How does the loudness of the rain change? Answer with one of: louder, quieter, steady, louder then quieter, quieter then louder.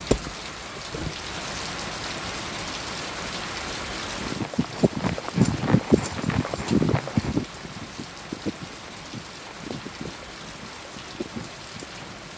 quieter.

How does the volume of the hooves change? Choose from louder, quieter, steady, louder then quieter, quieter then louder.
quieter.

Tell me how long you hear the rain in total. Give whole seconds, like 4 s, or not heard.
12 s.